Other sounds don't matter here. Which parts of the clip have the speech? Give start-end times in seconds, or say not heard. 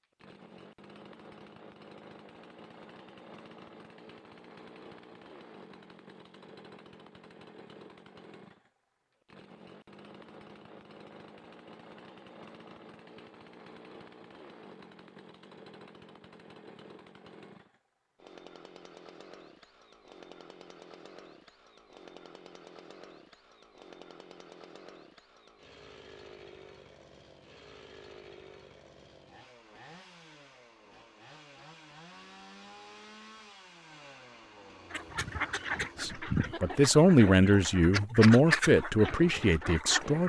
36.0-40.2.